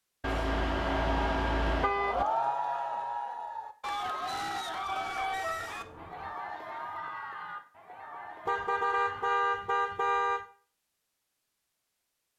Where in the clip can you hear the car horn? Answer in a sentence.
You can hear the car horn from 0.2 to 2.2 s, from 4.7 to 6.3 s and from 8.4 to 10.4 s.